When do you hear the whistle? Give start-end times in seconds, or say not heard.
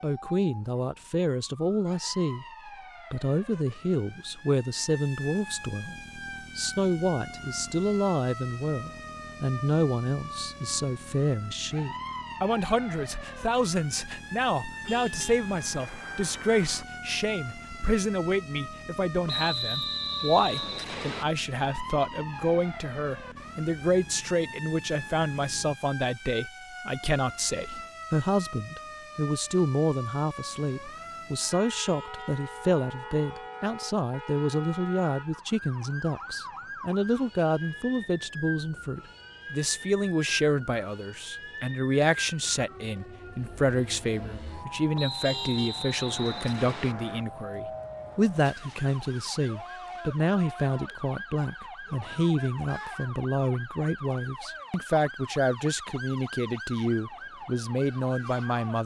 19.2-21.2, 45.0-47.0.